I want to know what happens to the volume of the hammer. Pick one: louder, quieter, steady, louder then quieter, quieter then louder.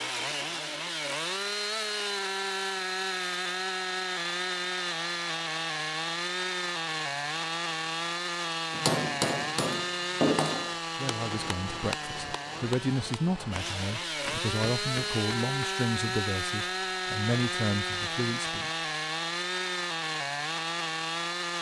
quieter.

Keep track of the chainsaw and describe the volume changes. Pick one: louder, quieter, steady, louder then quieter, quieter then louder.
steady.